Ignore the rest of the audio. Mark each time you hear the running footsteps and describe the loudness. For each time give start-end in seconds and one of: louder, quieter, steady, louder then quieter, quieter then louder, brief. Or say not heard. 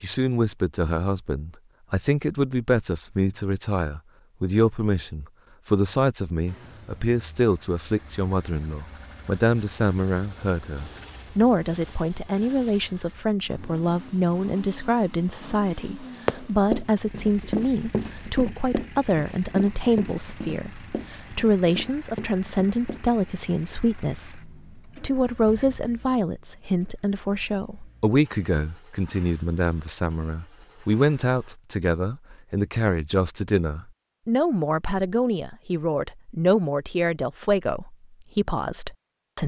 16.1-23.1 quieter.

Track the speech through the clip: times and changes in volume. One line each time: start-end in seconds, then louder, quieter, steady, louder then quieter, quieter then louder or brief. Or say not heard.
0.0-39.4 steady.